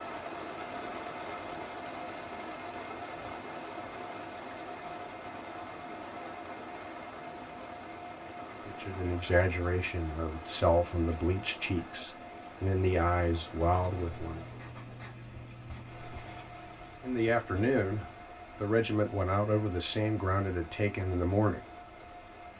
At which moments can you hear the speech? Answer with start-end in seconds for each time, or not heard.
8.7-14.4, 17.0-21.6.